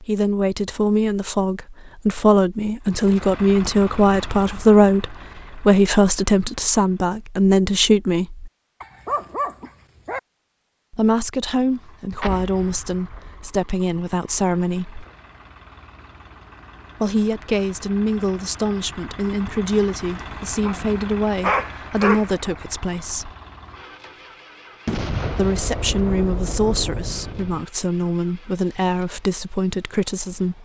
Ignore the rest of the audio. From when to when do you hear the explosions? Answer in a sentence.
The explosions can be heard from 12.2 to 13.4 s and from 24.9 to 27.6 s.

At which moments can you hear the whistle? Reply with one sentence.
The whistle can't be heard in this clip.